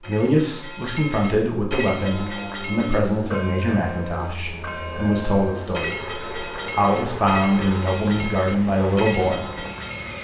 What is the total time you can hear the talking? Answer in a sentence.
You can hear the talking for 9 seconds altogether.